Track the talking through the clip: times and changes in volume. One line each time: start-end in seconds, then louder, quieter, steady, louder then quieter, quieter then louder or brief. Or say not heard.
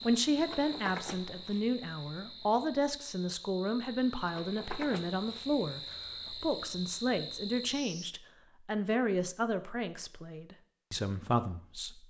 0.0-12.0 steady.